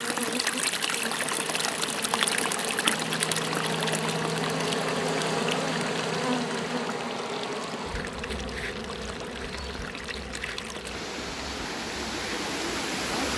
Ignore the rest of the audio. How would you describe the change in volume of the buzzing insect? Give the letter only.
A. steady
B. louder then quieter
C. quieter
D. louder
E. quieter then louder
B.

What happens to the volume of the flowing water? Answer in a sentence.
The volume of the flowing water goes down, then up.